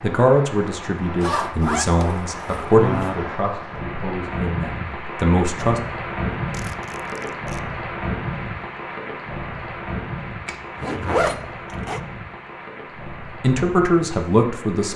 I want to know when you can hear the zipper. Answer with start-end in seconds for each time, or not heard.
1.2-3.1, 6.5-7.6, 10.4-12.0.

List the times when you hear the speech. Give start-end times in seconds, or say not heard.
0.0-5.8, 13.4-14.9.